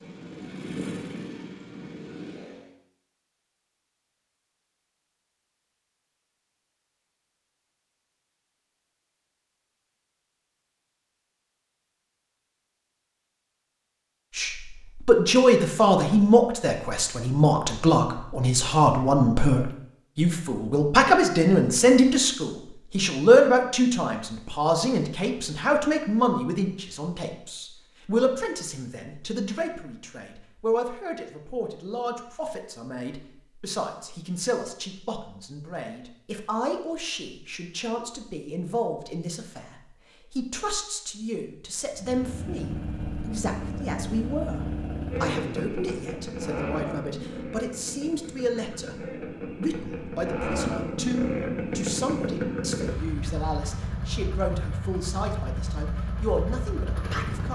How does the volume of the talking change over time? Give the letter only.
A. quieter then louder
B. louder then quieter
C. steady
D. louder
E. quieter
E.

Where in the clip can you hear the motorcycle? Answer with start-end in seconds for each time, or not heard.
0.0-2.7, 41.9-57.5.